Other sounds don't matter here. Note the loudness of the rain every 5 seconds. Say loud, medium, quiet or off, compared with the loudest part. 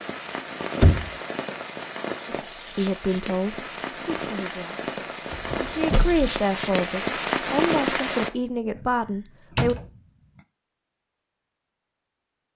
medium, loud, off.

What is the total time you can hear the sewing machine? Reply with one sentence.
The sewing machine can't be heard in this clip.